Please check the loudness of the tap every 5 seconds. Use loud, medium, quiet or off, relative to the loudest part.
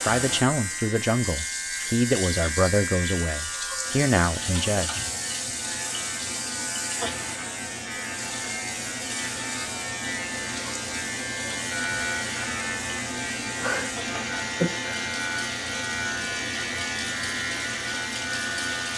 loud, loud, medium, loud.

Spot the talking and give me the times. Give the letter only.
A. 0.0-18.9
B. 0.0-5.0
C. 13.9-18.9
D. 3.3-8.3
B.